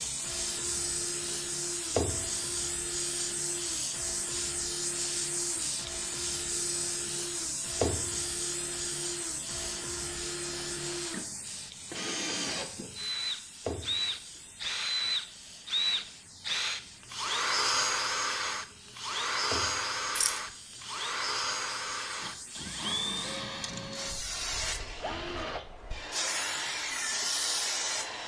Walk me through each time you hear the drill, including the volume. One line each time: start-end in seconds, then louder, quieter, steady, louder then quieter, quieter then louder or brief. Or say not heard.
0.0-28.2 louder then quieter.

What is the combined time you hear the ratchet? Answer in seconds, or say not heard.
not heard.